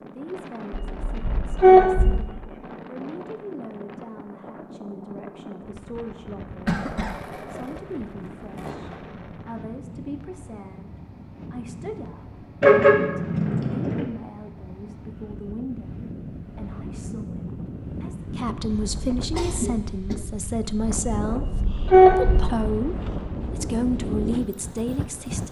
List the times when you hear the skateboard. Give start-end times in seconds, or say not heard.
6.8-9.7.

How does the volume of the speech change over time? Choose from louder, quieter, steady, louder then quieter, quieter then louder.
louder.